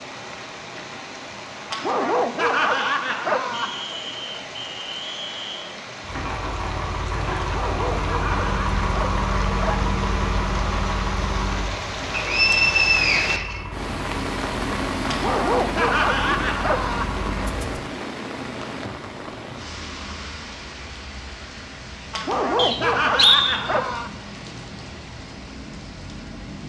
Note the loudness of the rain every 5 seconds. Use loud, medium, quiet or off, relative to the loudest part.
medium, medium, loud, loud, medium, medium.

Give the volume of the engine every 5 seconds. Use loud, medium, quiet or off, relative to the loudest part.
off, loud, loud, medium, off, off.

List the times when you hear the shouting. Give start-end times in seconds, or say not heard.
not heard.